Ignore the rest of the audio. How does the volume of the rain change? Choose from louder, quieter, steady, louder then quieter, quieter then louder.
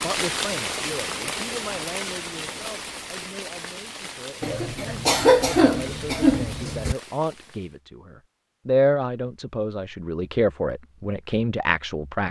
quieter.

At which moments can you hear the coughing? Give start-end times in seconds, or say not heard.
4.4-7.0.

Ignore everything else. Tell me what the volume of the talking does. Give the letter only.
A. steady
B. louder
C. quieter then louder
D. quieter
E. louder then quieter
C.